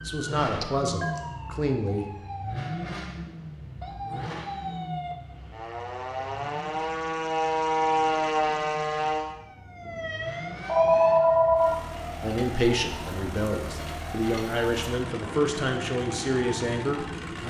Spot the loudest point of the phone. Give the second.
11 s.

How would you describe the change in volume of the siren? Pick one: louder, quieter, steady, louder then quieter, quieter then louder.
louder then quieter.